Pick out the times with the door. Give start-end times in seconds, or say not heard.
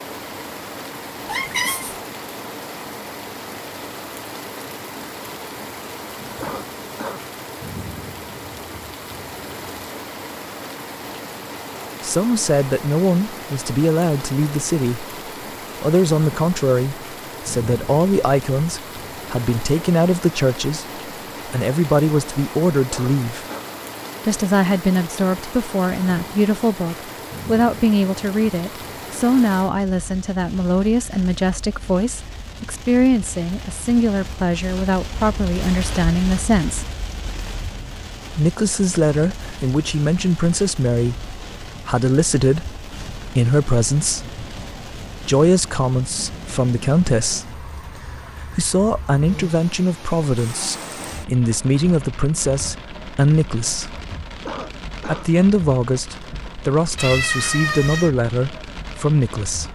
not heard.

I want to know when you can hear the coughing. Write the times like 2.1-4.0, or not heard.
6.4-7.2, 22.9-23.7, 54.5-55.3.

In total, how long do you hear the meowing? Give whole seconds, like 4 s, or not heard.
2 s.